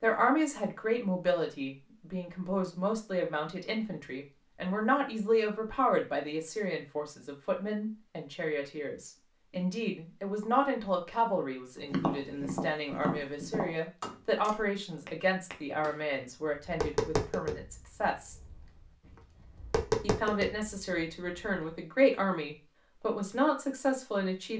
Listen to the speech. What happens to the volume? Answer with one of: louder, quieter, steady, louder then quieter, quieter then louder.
steady.